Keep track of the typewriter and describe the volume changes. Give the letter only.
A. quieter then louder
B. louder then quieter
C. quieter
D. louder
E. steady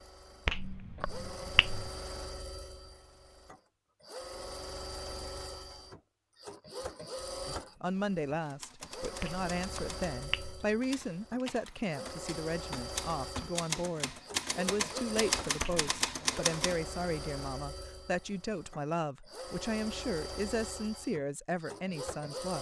D.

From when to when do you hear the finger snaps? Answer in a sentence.
The finger snaps can be heard from 0.5 to 1.9 s, from 9.2 to 10.6 s and from 15.6 to 16.1 s.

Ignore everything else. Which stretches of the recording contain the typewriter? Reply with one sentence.
You can hear the typewriter from 8.4 to 16.8 s.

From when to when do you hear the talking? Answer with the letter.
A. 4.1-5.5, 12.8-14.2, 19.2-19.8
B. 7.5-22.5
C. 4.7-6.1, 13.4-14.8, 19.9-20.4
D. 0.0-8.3
B.